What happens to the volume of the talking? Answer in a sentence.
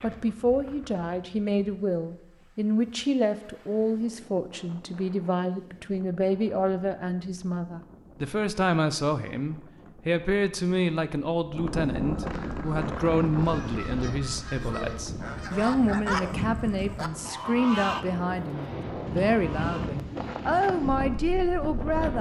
The loudness of the talking stays about the same.